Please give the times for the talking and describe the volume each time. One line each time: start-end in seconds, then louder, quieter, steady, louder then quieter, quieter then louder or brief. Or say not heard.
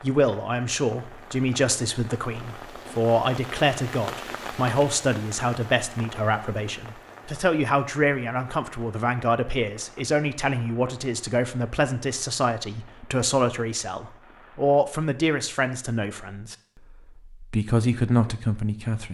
0.0-19.0 steady.